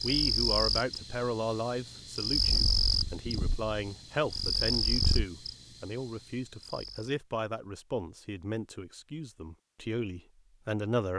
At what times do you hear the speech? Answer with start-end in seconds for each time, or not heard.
0.0-11.1.